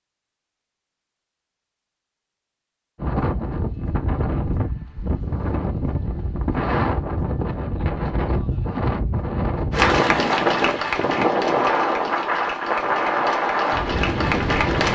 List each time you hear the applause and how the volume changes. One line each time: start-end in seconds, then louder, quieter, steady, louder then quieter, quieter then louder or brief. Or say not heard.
9.7-14.9 quieter then louder.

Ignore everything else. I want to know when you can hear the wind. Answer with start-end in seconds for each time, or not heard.
3.0-14.9.